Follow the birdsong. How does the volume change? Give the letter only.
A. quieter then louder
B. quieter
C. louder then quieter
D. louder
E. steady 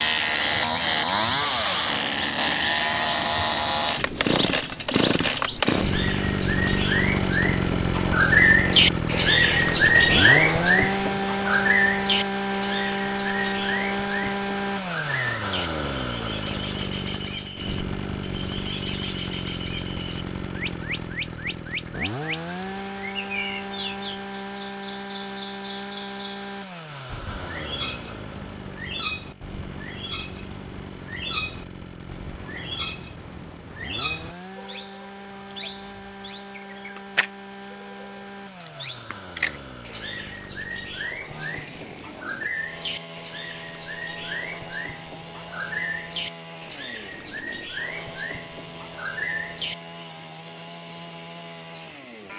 B.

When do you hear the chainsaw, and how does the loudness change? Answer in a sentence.
You can hear the chainsaw from 0.0 to 52.3 s, getting quieter.